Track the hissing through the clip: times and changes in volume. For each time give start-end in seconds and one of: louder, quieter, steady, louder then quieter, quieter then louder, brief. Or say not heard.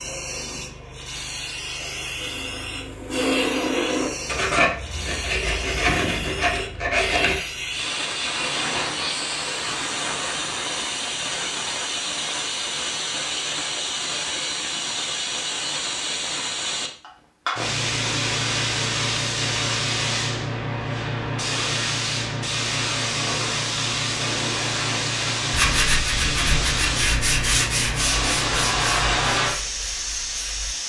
0.0-30.8 louder.